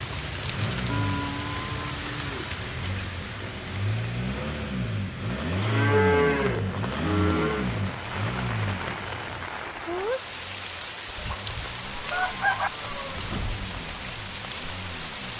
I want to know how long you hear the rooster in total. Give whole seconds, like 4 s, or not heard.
2 s.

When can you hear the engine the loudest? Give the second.
6 s.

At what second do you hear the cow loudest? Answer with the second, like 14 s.
6 s.